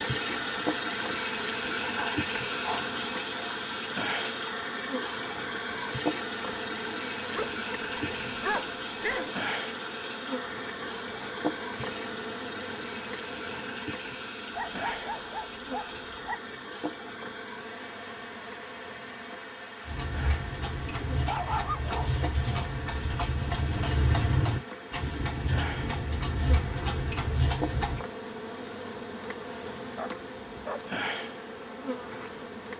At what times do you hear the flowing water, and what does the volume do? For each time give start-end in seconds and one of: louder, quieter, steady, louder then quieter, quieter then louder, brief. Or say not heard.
0.0-32.7 quieter.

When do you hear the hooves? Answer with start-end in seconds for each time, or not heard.
19.9-28.0.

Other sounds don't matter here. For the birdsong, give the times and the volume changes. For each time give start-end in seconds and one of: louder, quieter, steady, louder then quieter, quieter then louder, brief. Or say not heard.
not heard.